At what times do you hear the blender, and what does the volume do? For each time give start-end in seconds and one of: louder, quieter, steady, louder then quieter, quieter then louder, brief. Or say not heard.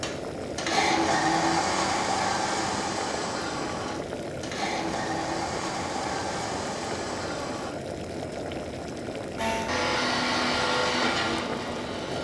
0.0-7.7 quieter
9.3-12.1 brief.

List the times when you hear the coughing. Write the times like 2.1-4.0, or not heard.
not heard.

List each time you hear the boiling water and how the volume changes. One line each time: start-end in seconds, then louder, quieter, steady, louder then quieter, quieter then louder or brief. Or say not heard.
0.0-12.1 steady.